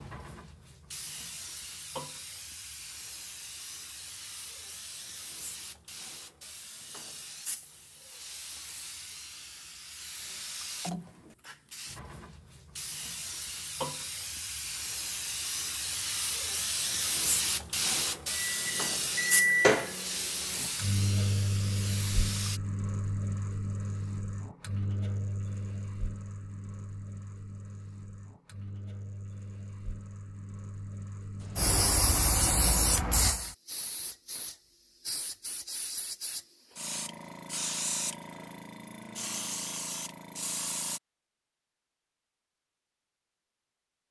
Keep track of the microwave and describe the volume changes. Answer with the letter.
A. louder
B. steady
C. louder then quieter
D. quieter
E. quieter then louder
D.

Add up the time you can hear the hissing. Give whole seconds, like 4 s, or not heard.
32 s.